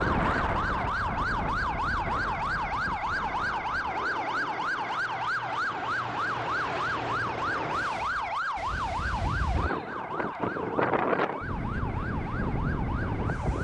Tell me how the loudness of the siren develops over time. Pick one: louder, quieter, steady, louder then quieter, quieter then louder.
quieter.